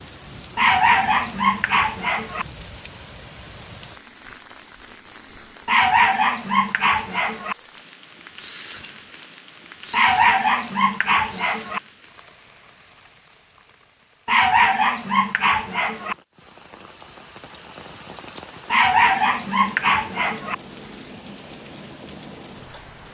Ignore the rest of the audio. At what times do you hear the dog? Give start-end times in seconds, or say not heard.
0.6-2.5, 5.7-7.5, 9.9-11.8, 14.2-16.1, 18.7-20.6.